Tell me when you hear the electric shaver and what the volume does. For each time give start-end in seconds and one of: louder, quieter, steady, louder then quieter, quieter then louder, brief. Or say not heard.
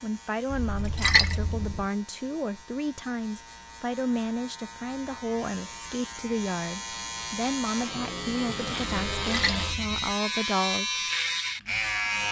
0.0-12.2 louder.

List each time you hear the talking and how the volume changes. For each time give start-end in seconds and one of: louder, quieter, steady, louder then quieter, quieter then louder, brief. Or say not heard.
0.0-10.9 steady.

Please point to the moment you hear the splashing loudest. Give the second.
1 s.